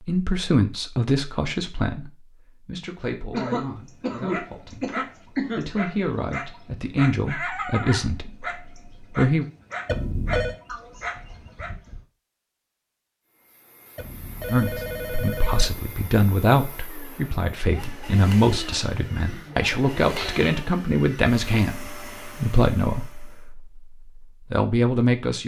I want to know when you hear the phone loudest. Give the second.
10 s.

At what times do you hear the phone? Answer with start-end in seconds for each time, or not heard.
9.8-10.6, 13.9-15.8.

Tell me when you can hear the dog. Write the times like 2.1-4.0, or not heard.
3.3-11.8.